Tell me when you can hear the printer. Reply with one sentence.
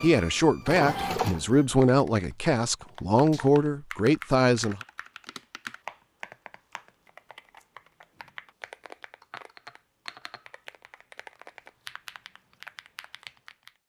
The printer can be heard from 0.0 to 1.6 s.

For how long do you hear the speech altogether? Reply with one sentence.
The speech can be heard for 5 seconds in total.